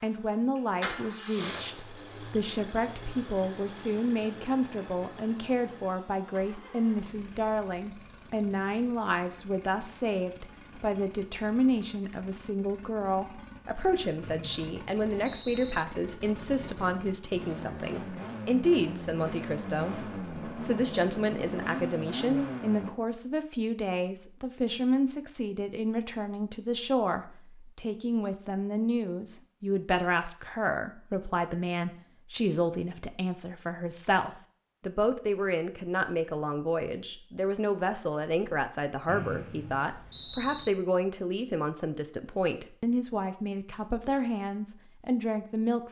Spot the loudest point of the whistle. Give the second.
40 s.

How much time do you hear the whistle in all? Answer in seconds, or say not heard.
3 s.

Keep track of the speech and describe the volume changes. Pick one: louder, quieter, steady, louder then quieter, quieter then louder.
steady.